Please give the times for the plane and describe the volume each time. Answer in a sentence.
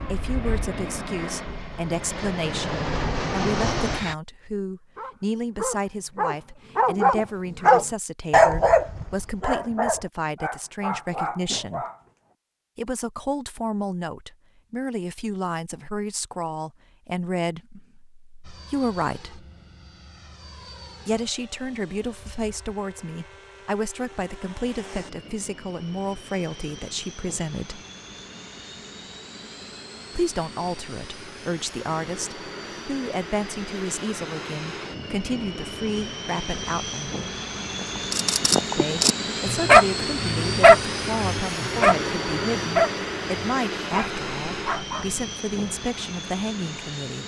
You can hear the plane from 0.0 to 4.2 s, getting louder; and from 18.4 to 47.2 s, getting louder.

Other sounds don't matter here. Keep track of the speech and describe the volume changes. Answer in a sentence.
The loudness of the speech stays about the same.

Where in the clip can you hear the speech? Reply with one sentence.
You can hear the speech from 0.0 to 11.8 s, from 12.8 to 19.4 s, from 21.1 to 27.8 s, from 30.1 to 37.1 s and from 38.8 to 47.2 s.